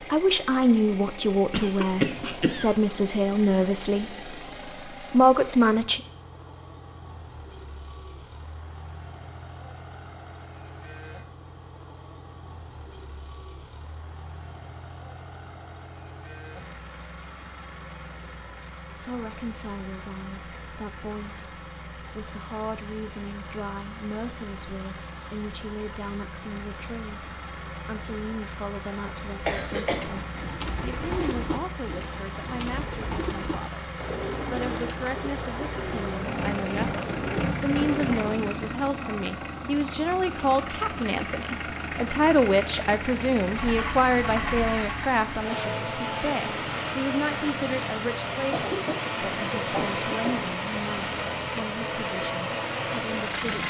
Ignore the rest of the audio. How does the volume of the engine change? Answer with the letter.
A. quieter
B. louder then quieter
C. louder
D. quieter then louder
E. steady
C.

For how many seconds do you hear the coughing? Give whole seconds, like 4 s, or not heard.
4 s.